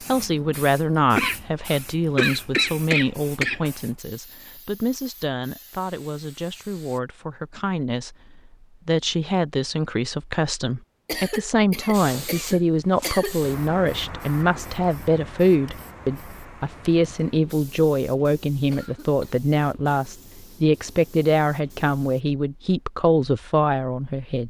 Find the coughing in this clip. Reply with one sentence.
The coughing can be heard from 1.1 to 3.7 s, from 11.1 to 13.4 s and from 18.7 to 19.4 s.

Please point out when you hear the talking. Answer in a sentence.
The talking can be heard from 0.1 to 24.4 s.